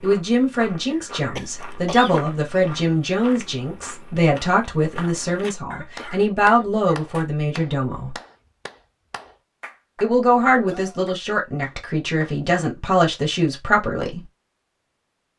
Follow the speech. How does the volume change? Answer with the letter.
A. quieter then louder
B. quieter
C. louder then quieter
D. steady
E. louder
D.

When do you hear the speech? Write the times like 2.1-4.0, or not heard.
0.0-8.2, 10.0-14.2.